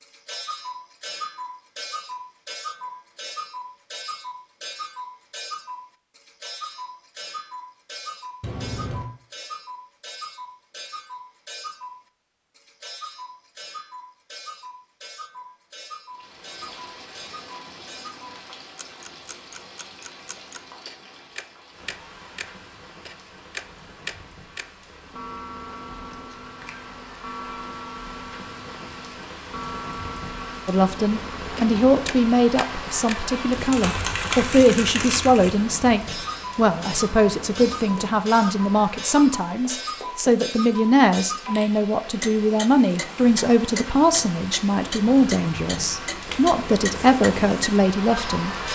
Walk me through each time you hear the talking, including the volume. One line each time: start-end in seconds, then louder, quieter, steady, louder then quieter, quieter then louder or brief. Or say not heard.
30.6-48.5 steady.